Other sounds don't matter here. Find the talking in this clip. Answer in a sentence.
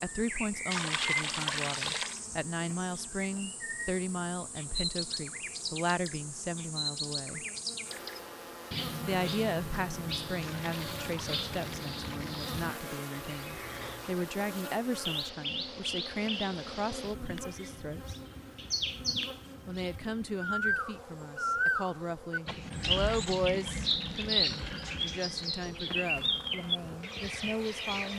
The talking can be heard from 0.0 to 7.5 s, from 9.1 to 18.1 s and from 19.6 to 28.1 s.